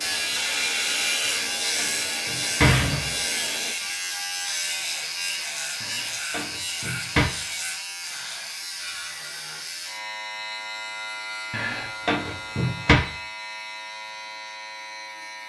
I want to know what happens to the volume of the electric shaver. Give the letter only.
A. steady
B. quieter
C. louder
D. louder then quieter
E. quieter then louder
B.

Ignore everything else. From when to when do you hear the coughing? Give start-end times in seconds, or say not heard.
not heard.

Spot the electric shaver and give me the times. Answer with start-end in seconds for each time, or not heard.
0.0-15.4.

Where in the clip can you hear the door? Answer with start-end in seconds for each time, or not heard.
1.2-3.2, 5.8-7.2, 11.5-13.0.